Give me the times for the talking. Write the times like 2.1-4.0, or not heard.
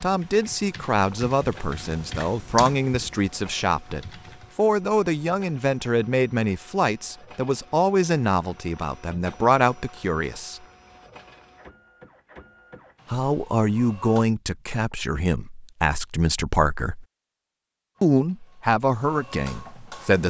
0.0-10.6, 13.1-17.1, 18.0-20.2.